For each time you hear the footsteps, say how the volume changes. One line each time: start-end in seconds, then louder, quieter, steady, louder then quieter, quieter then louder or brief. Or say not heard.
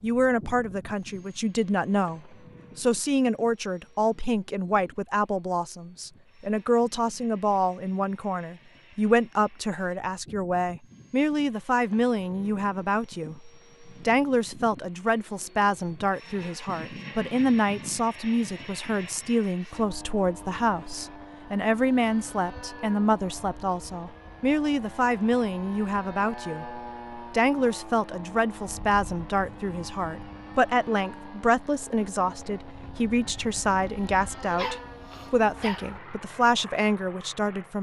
not heard.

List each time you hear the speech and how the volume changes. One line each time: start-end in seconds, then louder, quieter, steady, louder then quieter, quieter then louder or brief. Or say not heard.
0.0-37.7 steady.